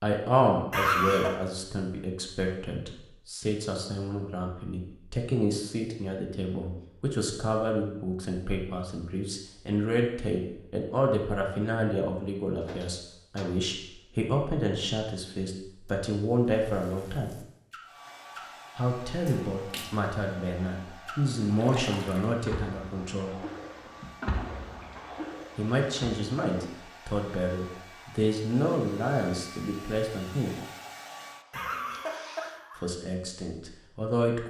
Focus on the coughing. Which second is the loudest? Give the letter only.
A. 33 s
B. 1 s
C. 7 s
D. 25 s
B.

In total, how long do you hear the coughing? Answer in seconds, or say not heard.
2 s.